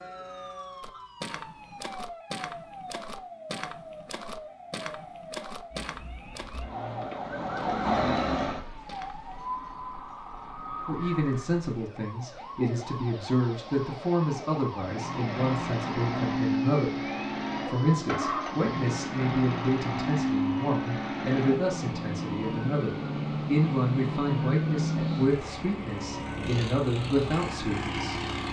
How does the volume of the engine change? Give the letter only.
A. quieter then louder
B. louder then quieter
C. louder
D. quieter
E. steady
D.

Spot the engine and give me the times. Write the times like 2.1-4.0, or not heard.
14.8-28.4.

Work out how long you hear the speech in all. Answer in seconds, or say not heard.
17 s.